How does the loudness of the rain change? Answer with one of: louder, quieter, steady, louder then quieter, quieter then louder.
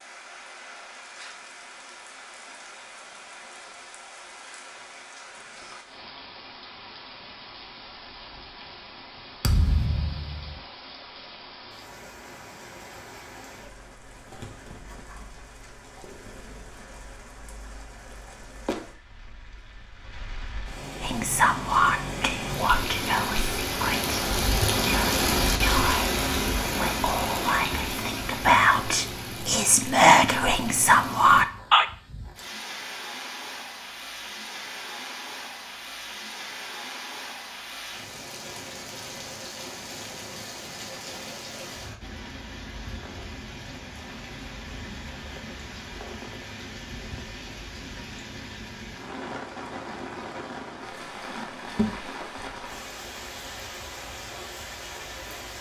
louder then quieter.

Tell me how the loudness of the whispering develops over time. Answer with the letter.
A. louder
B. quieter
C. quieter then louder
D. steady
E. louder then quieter
C.